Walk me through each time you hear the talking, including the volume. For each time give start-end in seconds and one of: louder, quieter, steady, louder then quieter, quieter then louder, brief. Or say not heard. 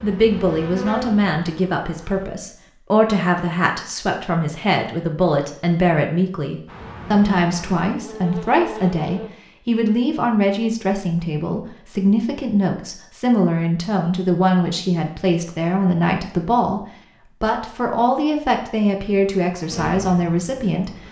0.0-20.9 steady.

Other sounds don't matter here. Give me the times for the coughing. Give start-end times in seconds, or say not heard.
not heard.